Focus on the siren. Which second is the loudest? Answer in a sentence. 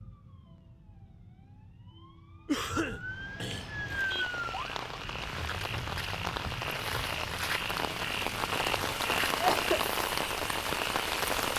The volume of the siren peaks at 4 seconds.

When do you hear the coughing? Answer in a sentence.
The coughing can be heard from 2.5 to 3.7 s and from 9.2 to 9.8 s.